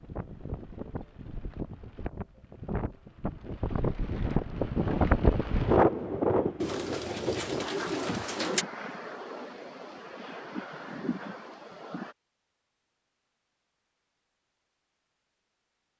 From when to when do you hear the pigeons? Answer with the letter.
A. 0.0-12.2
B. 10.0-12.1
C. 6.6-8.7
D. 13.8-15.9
C.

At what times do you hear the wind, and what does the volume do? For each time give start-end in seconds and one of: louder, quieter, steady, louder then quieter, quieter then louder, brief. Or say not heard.
0.0-12.2 louder then quieter.